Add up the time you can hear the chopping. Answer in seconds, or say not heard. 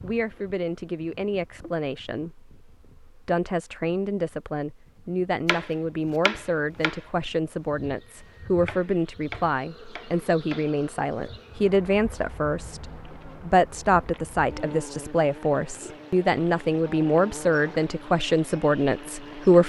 5 s.